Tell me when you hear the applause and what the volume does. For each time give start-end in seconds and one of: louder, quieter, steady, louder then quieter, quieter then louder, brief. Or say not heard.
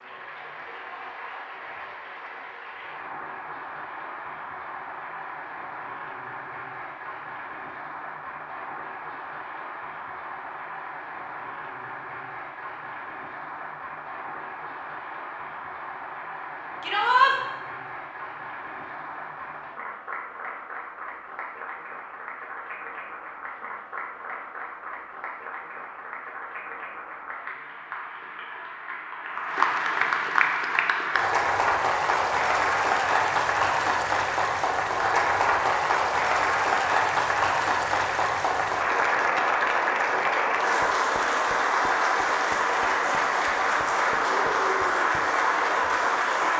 0.0-46.5 louder.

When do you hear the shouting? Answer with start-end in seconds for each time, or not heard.
16.8-17.4.